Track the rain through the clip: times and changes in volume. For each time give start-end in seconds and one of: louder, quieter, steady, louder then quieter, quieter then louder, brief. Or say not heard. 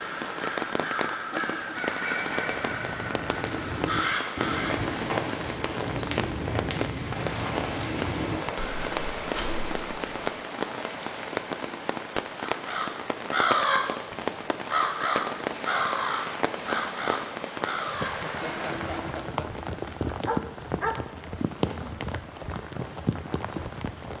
0.0-24.1 steady.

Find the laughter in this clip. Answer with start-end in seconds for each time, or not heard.
0.8-1.8, 18.0-19.6.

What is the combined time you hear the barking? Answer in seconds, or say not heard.
2 s.